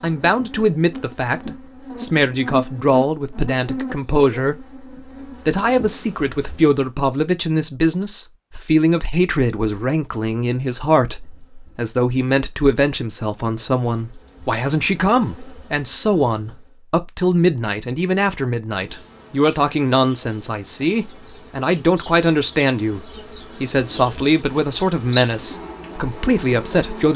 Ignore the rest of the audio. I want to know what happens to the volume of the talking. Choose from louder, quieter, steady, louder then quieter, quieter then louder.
steady.